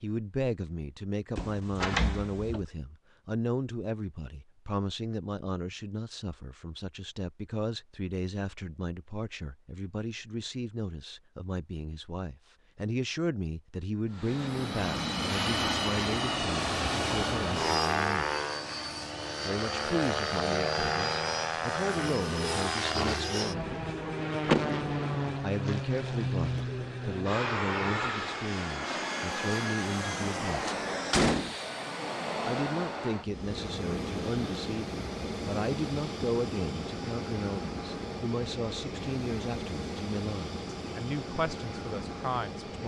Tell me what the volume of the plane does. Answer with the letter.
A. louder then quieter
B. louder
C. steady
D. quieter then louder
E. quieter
E.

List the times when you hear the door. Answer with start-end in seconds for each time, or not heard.
1.4-2.6, 24.4-25.2, 30.4-31.6.